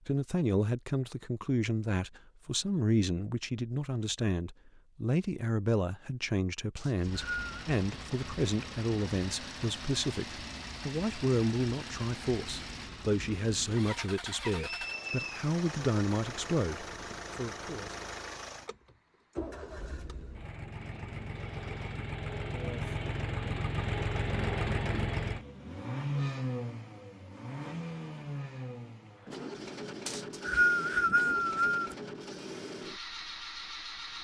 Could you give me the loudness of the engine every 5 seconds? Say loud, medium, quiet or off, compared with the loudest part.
off, medium, medium, medium, loud, loud, medium.